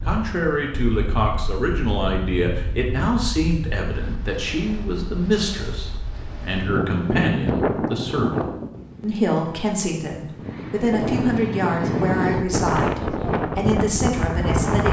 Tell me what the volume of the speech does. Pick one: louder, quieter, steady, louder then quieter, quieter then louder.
steady.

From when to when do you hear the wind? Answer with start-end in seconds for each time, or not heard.
0.0-14.8.